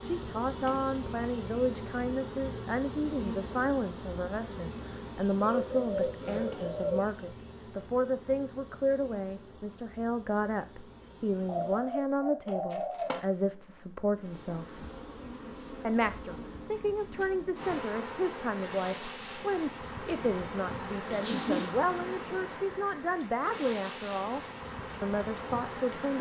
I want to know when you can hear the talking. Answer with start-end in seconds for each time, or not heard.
0.1-14.8, 15.8-24.4, 25.0-26.1.